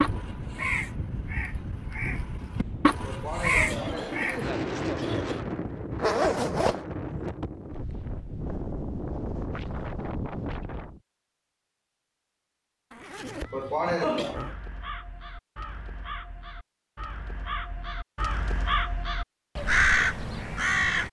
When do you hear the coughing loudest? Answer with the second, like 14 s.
14 s.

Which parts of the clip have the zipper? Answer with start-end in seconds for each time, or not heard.
6.0-6.8, 12.9-14.6.